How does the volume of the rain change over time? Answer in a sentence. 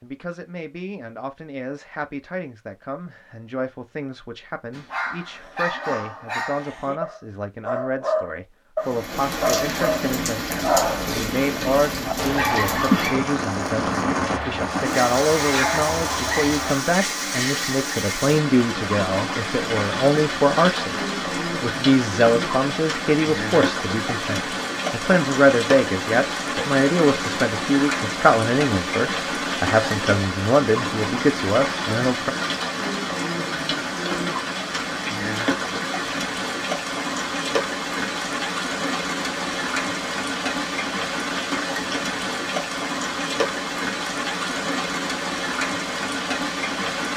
The loudness of the rain stays about the same.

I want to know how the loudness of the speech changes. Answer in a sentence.
The loudness of the speech goes up.